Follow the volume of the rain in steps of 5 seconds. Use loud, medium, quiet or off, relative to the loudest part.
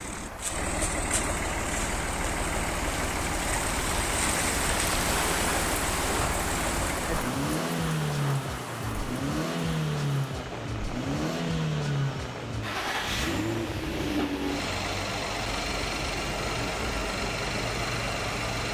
loud, loud, medium, off.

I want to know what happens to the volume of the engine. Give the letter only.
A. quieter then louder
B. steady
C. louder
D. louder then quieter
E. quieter
B.